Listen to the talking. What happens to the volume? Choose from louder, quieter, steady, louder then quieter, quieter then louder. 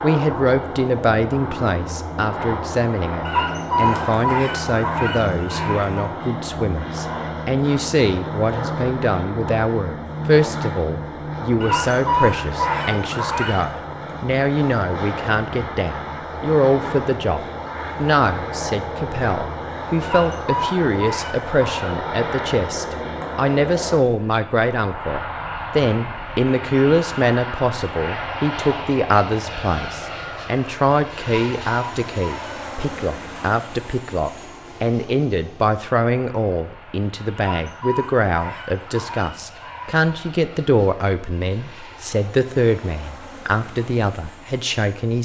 steady.